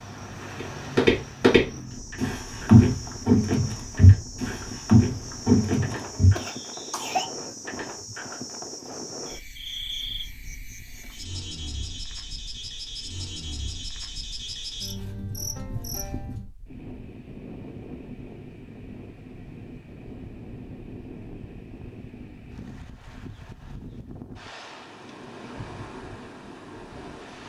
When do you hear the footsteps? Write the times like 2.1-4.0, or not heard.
0.6-6.3.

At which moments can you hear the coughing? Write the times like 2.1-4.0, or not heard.
6.3-7.3.